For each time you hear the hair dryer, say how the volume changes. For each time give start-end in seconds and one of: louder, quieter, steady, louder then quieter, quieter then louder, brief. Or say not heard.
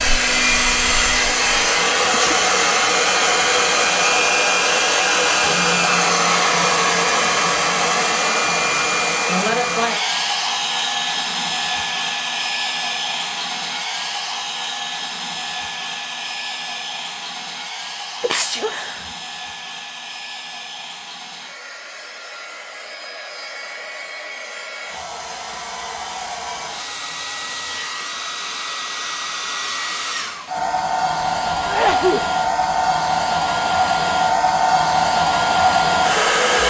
0.0-36.6 quieter then louder.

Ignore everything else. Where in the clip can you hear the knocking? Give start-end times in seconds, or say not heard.
not heard.